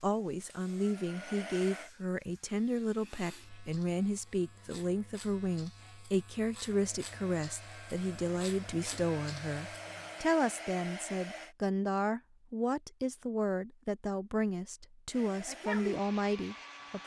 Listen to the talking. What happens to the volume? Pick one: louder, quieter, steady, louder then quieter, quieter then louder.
steady.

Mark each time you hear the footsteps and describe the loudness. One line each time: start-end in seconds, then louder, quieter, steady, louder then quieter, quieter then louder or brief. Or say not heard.
not heard.